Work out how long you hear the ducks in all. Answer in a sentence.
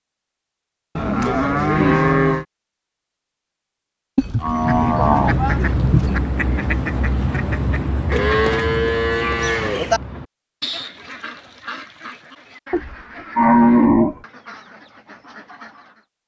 The ducks can be heard for 12 seconds in total.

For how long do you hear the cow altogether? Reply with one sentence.
You can hear the cow for 7 seconds altogether.